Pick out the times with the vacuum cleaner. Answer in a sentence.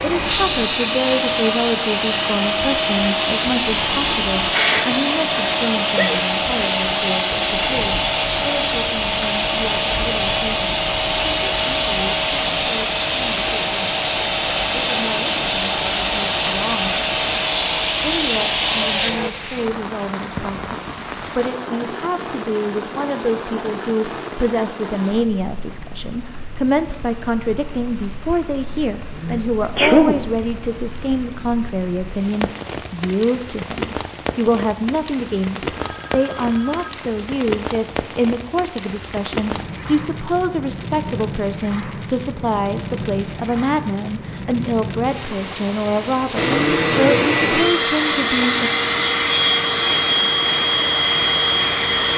You can hear the vacuum cleaner from 0.0 to 19.3 s and from 46.4 to 52.1 s.